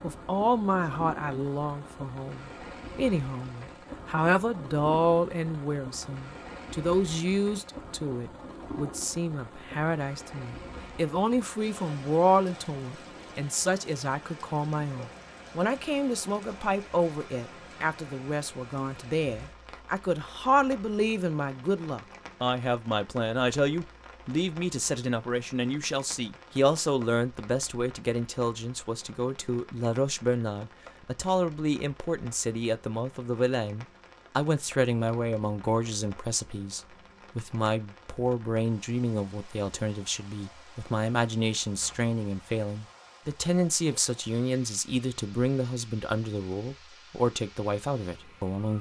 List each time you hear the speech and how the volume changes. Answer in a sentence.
You can hear the speech from 0.0 to 48.7 s, at a steady volume.